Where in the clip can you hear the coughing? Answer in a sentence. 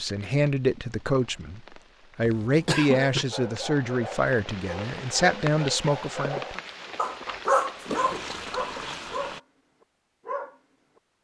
The coughing can be heard from 2.2 to 3.2 s and from 7.9 to 8.3 s.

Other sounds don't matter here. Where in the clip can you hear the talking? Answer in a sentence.
You can hear the talking from 0.0 to 6.6 s.